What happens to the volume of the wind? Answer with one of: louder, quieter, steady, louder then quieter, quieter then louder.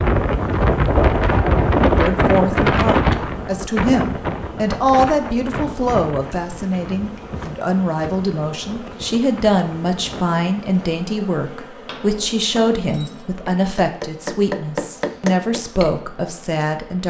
quieter.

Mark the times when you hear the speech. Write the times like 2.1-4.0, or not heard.
1.9-17.0.